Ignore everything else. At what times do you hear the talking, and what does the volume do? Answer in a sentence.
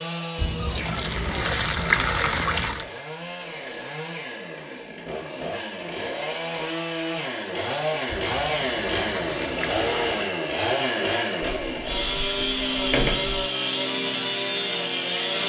You can't hear the talking here.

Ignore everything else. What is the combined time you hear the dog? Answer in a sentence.
The dog can't be heard in this clip.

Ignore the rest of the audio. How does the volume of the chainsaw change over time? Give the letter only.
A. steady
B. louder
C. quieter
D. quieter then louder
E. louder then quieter
B.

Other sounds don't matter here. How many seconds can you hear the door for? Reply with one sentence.
The door can be heard for 2 seconds in total.